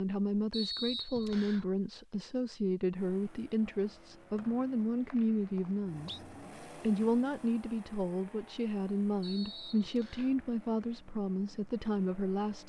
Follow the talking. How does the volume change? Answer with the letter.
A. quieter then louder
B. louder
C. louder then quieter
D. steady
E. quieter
D.